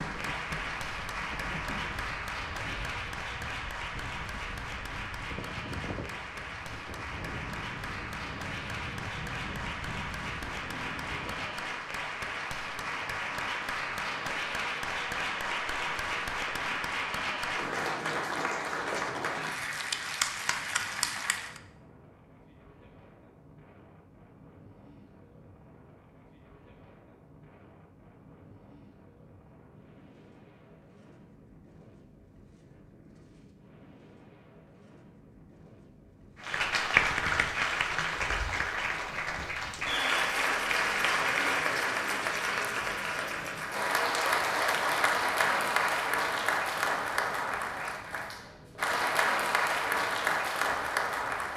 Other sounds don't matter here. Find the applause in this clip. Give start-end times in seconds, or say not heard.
0.0-21.6, 36.4-51.5.